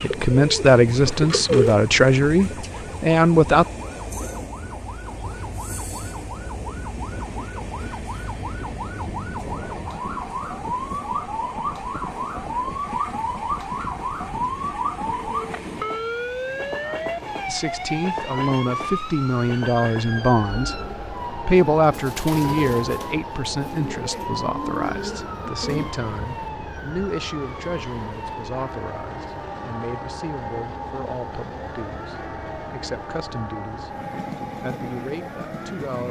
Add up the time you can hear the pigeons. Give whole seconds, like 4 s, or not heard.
7 s.